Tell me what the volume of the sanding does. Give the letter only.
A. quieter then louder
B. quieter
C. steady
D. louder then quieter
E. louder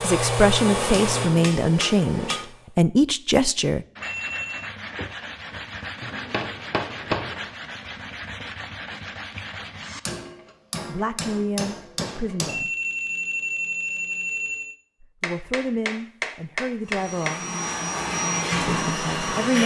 C.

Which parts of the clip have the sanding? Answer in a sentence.
The sanding can be heard from 4.0 to 10.0 s.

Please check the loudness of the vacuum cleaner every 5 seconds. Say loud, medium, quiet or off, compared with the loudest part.
loud, off, off, loud.